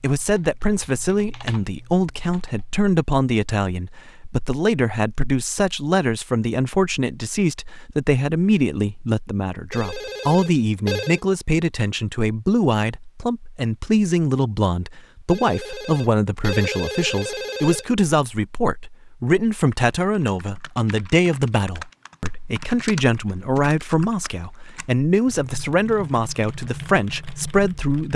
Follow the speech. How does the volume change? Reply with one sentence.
The volume of the speech stays about the same.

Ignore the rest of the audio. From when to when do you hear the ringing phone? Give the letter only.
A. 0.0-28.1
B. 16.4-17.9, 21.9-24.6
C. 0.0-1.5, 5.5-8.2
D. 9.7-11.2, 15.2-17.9
D.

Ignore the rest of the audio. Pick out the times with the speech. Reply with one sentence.
The speech can be heard from 0.0 to 28.1 s.